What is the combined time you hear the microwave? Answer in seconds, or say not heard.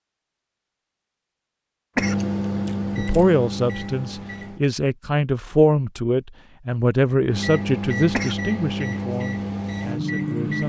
6 s.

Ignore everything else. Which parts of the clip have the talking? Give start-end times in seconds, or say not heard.
3.0-10.6.